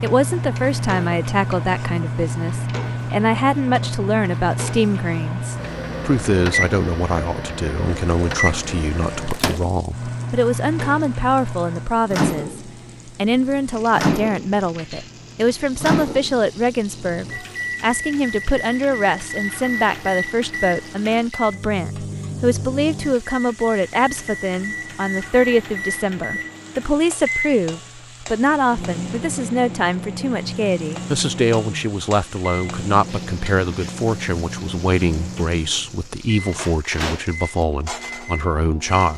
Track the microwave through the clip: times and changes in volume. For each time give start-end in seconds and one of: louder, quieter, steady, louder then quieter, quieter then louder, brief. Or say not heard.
0.0-39.1 quieter.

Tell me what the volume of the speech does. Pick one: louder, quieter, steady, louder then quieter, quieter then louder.
steady.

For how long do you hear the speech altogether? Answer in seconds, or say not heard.
39 s.